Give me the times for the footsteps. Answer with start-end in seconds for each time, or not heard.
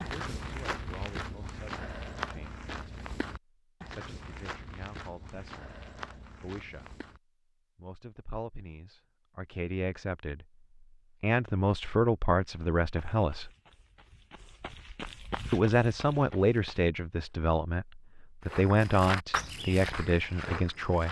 0.0-7.2, 12.8-17.4, 18.4-21.0.